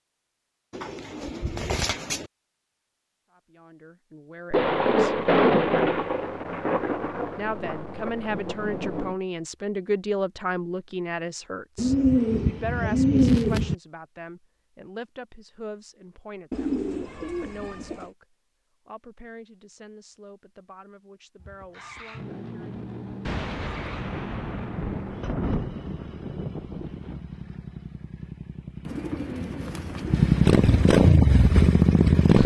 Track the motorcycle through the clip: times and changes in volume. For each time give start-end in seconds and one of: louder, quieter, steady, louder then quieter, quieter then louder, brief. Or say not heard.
21.4-32.4 louder.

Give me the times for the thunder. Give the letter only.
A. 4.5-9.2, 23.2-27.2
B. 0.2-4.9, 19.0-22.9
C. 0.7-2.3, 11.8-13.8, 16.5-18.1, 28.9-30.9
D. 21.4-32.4
A.